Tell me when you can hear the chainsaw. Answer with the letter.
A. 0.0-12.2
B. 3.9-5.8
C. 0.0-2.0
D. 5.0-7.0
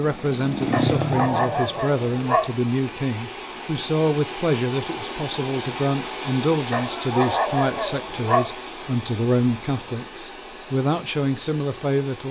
C.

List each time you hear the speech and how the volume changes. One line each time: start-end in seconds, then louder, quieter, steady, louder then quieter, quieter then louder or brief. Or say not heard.
0.0-12.2 steady.